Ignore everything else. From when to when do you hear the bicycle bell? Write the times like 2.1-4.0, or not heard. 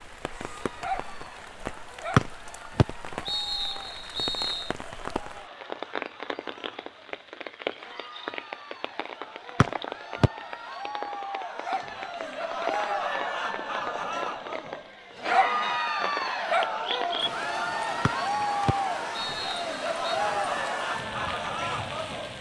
not heard.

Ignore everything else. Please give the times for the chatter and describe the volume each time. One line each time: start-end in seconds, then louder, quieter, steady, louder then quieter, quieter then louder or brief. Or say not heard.
0.1-22.3 louder.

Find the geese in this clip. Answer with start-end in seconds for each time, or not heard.
not heard.